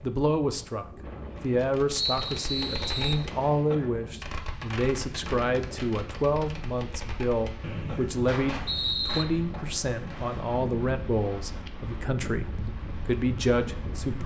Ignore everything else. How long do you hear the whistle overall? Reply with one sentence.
The whistle can be heard for 3 seconds in total.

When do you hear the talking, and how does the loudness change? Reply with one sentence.
You can hear the talking from 0.0 to 14.2 s, at a steady volume.